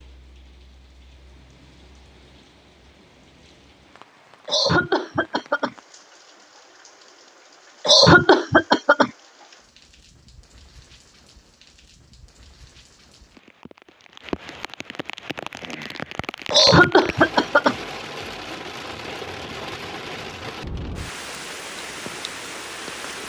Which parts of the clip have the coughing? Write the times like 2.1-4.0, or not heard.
4.5-5.8, 7.8-9.1, 16.5-17.8.